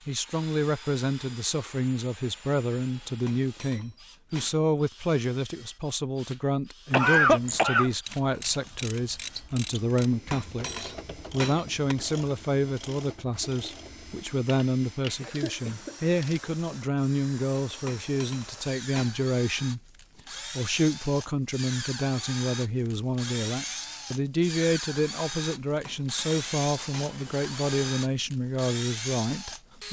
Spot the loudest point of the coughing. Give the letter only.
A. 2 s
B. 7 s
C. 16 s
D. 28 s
B.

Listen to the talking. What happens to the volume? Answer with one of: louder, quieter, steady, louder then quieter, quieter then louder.
steady.